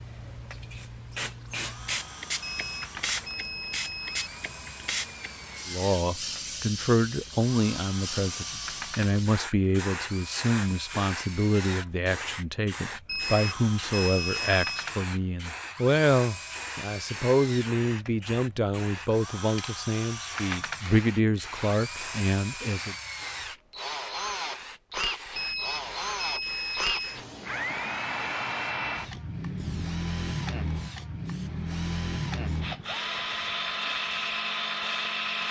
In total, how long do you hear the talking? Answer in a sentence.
You can hear the talking for 17 seconds altogether.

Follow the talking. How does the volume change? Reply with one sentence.
The volume of the talking stays about the same.